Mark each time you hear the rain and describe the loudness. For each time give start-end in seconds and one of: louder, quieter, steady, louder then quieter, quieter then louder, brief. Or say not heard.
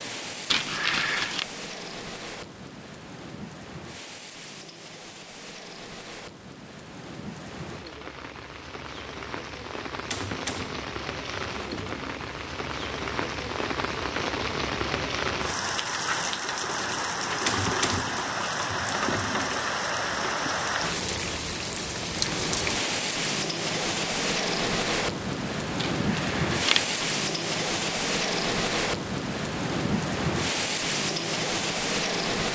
0.0-32.5 louder.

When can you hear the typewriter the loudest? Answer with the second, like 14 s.
18 s.